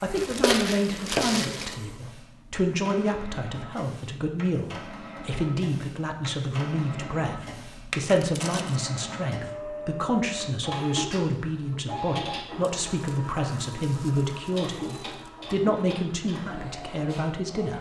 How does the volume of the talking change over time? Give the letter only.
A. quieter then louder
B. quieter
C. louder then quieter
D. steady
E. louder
D.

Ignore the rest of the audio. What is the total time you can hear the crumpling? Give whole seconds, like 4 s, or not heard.
5 s.